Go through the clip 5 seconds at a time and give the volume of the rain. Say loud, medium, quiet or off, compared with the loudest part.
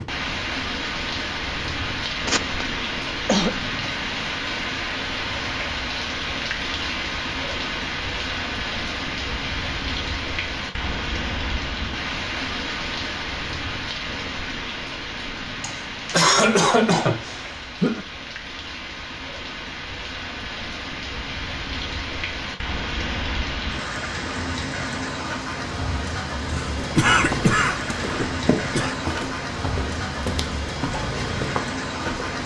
loud, loud, loud, medium, loud, loud, loud.